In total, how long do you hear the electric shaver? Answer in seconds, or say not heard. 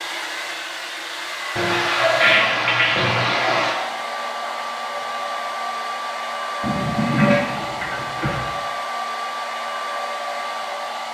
not heard.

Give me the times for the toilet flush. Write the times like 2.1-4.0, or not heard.
1.6-3.8, 6.6-8.5.